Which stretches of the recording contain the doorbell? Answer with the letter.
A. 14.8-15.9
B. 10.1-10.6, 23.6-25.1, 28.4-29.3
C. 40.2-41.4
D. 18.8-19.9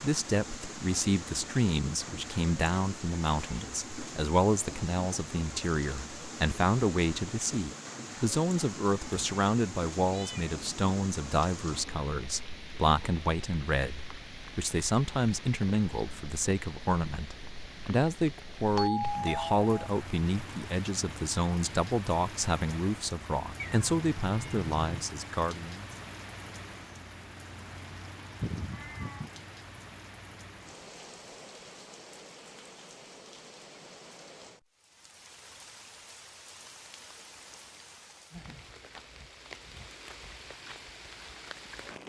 D.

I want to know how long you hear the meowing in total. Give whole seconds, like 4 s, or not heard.
3 s.